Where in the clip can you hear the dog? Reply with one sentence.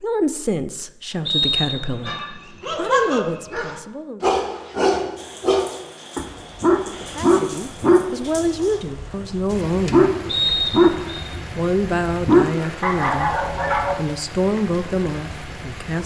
The dog can be heard from 2.0 to 13.9 s.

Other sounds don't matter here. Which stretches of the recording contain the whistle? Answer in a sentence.
You can hear the whistle from 1.2 to 2.2 s and from 10.2 to 11.2 s.